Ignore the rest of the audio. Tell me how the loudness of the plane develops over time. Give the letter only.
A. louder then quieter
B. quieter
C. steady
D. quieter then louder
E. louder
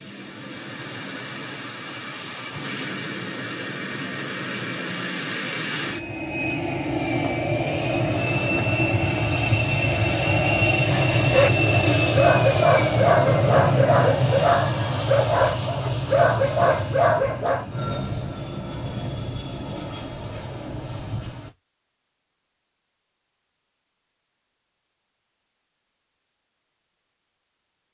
A.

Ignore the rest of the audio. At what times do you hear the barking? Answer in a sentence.
You can hear the barking from 10.8 to 17.6 s.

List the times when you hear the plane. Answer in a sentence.
You can hear the plane from 0.0 to 21.6 s.